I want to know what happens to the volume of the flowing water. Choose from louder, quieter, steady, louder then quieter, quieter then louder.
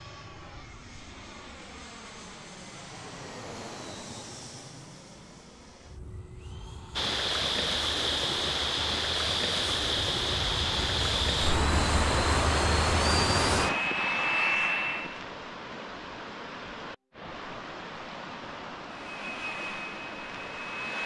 quieter.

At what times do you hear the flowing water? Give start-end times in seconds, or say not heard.
7.0-21.0.